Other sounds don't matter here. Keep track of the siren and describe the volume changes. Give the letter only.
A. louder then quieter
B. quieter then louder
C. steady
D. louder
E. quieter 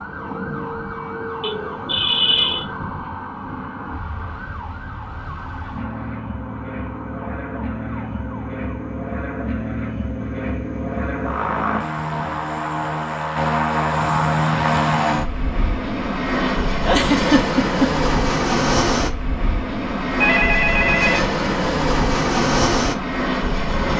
E.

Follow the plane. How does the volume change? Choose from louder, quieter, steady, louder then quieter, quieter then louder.
louder.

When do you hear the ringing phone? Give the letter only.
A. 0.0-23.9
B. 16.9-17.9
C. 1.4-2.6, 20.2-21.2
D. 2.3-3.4
C.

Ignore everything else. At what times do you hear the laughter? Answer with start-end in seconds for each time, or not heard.
16.9-17.9.